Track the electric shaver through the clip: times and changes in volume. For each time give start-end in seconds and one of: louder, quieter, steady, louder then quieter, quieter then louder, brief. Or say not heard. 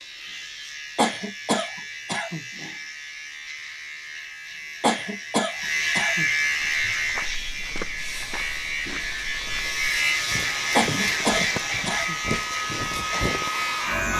0.0-14.1 louder.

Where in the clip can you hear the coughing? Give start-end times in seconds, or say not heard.
0.9-2.4, 4.8-6.2, 10.8-12.2.